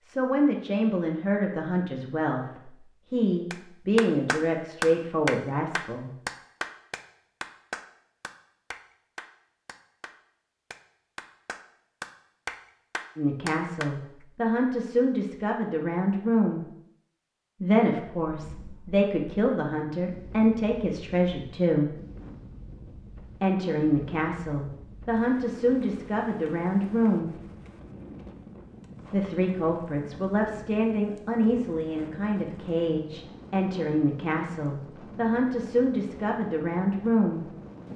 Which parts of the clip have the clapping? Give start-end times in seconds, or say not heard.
3.5-13.9.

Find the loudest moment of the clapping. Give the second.
5 s.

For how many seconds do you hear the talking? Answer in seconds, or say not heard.
26 s.